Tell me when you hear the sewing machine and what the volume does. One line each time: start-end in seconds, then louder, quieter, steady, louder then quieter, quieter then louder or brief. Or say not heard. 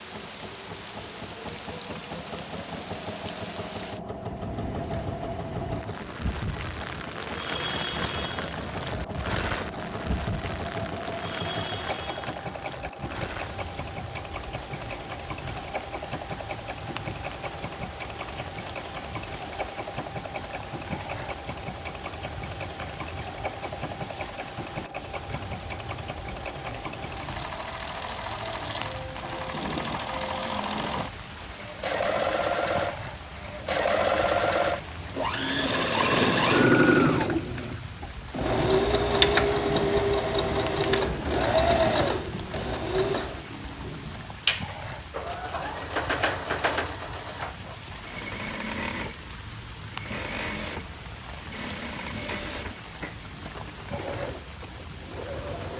0.0-55.7 louder then quieter.